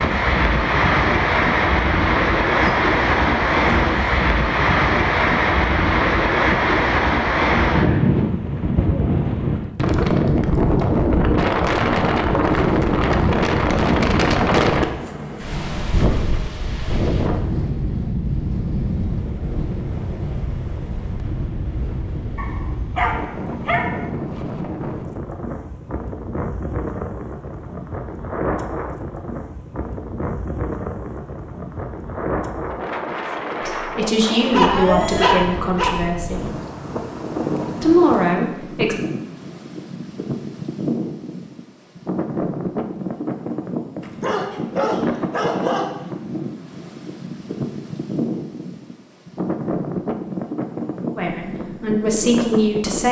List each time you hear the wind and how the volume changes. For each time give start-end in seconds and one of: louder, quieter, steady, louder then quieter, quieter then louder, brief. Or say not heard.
0.0-53.0 quieter.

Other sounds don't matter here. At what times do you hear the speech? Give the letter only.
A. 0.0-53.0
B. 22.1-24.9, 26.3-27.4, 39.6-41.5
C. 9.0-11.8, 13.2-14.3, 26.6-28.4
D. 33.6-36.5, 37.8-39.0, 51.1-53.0
D.